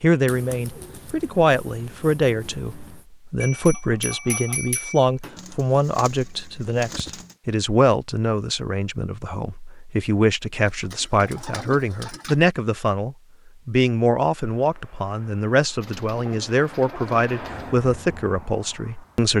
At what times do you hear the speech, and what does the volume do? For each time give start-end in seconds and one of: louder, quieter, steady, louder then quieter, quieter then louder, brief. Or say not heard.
0.0-19.3 steady.